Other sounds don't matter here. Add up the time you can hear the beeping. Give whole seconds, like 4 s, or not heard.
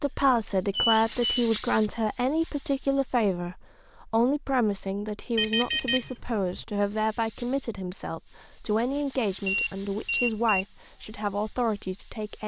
3 s.